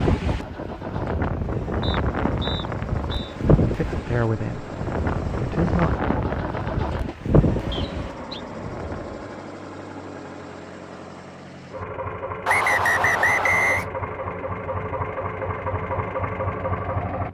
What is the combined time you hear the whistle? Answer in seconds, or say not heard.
4 s.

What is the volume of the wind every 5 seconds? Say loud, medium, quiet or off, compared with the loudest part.
loud, loud, off, off.